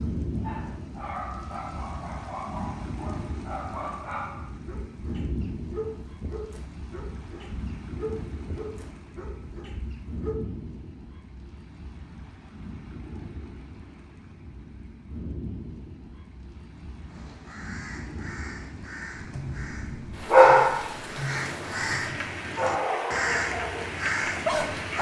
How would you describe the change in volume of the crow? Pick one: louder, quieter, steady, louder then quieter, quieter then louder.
louder.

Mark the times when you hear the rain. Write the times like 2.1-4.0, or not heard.
0.0-24.9.